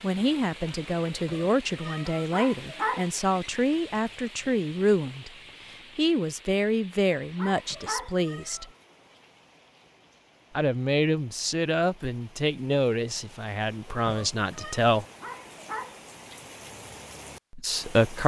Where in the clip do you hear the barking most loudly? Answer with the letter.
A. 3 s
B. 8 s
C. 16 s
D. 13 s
A.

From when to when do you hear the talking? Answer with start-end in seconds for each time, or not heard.
0.0-5.3, 6.0-8.7, 10.6-15.1, 17.5-18.2.